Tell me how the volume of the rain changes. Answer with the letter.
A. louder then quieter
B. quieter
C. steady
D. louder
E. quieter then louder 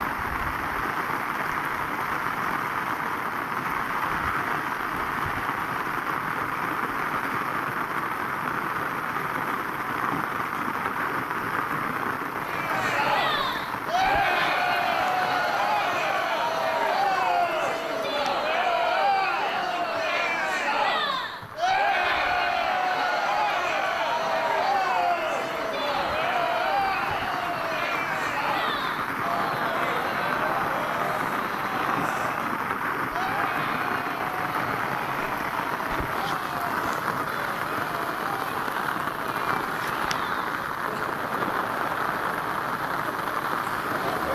E.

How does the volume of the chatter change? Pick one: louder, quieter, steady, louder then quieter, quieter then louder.
quieter.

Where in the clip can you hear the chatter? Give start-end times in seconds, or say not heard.
12.4-44.2.